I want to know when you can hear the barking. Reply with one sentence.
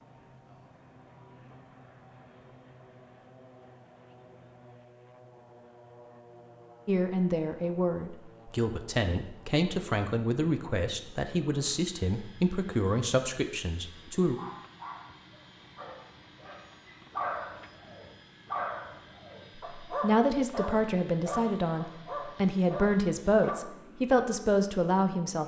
The barking can be heard from 14.3 to 23.6 s.